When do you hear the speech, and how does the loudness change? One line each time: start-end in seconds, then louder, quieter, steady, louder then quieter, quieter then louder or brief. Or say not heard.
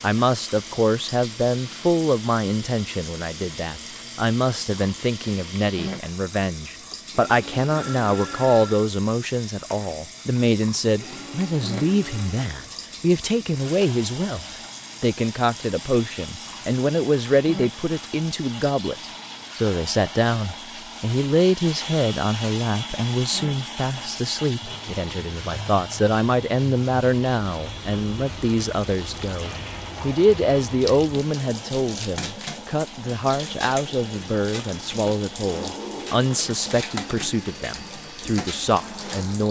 0.0-39.4 steady.